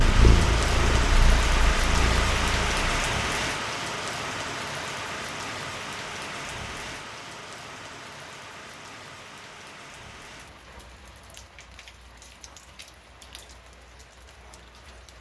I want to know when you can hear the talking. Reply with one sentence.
The talking can't be heard in this clip.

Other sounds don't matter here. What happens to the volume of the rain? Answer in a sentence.
The volume of the rain goes down.